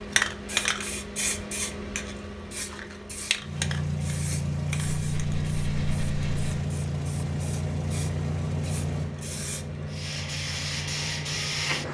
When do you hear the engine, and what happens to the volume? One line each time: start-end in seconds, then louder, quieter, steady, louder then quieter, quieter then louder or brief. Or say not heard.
3.4-11.9 quieter.